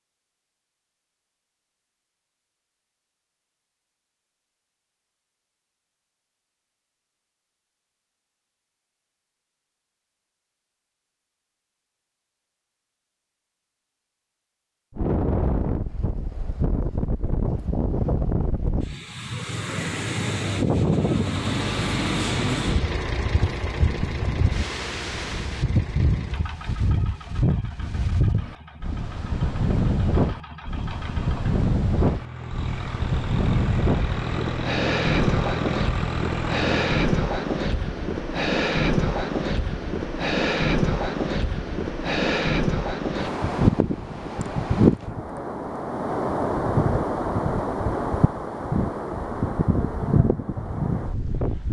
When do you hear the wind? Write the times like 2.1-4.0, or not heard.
14.9-51.6.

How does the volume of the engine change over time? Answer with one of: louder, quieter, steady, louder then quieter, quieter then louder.
quieter then louder.